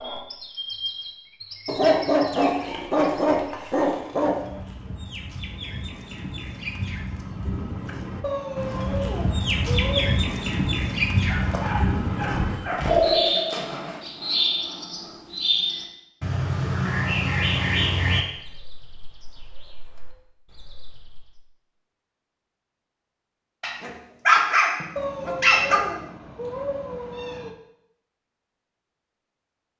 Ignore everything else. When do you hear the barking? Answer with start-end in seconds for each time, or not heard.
1.6-4.3, 11.2-13.1, 23.6-25.8.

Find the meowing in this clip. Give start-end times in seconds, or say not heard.
8.2-10.2, 24.9-27.6.